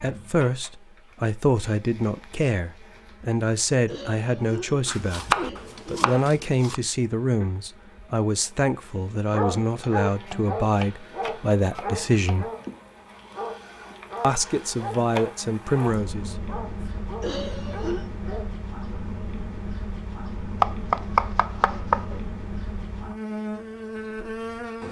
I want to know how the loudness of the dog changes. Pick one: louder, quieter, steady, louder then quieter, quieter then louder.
quieter.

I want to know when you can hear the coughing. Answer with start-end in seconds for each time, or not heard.
3.9-6.1, 17.2-18.1.